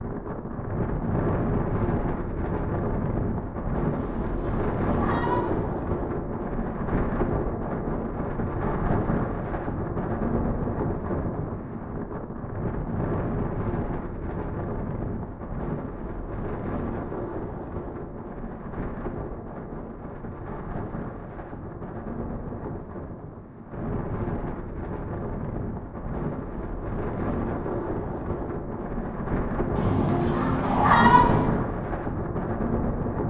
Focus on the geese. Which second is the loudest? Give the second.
31 s.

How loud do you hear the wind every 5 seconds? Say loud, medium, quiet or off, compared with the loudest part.
loud, loud, loud, medium, medium, loud, loud.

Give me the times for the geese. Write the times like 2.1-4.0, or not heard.
3.9-5.7, 29.8-31.5.